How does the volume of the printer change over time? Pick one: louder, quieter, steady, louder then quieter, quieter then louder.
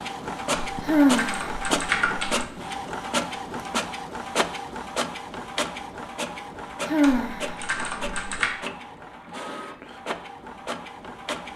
quieter.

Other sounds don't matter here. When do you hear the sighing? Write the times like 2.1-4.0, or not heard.
0.8-2.3, 6.8-8.2.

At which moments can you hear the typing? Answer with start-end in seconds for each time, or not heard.
0.5-2.5, 7.0-8.5.